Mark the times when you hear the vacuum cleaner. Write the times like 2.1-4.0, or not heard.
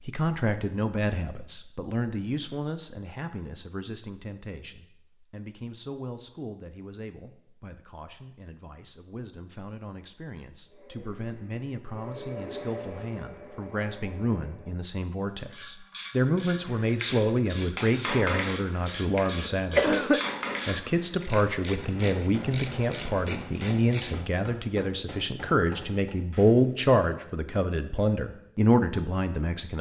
10.7-14.8.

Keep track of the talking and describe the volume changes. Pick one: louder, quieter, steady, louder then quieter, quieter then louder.
quieter then louder.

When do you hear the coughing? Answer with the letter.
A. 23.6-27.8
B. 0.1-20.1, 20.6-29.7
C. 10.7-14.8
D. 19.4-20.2
D.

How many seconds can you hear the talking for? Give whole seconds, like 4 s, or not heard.
29 s.